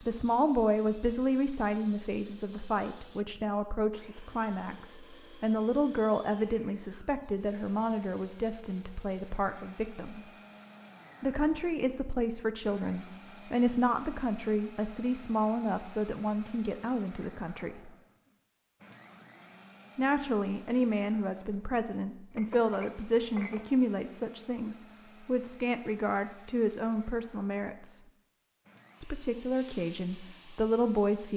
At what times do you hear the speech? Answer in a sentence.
You can hear the speech from 0.0 to 10.2 s, from 11.2 to 17.9 s, from 19.9 to 28.0 s and from 29.0 to 31.3 s.